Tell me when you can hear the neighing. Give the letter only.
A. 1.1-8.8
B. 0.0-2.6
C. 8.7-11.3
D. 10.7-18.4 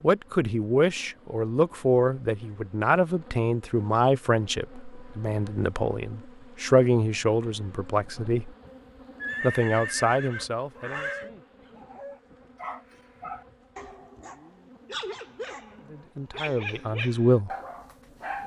C.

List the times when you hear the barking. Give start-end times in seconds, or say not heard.
10.7-18.4.